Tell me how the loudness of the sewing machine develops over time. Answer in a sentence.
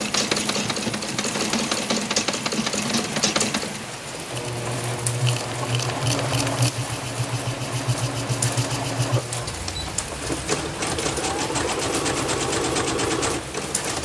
The loudness of the sewing machine stays about the same.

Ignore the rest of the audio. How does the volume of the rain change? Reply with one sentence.
The volume of the rain stays about the same.